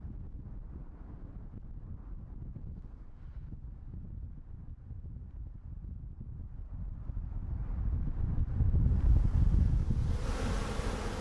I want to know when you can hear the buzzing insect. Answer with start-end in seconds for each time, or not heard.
8.8-11.1.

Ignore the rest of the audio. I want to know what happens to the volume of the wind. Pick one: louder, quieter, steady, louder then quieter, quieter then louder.
louder.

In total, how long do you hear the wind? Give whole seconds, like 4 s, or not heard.
11 s.